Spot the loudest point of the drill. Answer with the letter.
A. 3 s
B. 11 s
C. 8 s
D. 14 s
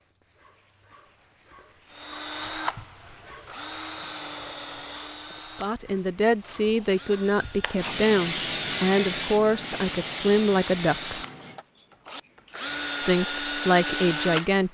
D.